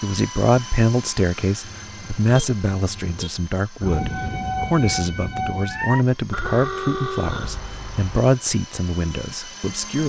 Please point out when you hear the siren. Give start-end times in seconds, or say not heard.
3.8-6.0.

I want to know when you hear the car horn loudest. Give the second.
7 s.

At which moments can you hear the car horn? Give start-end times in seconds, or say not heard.
1.6-3.3, 6.3-8.2.